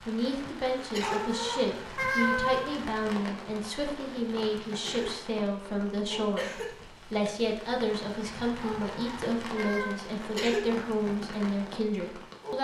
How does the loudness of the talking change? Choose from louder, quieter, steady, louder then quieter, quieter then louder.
steady.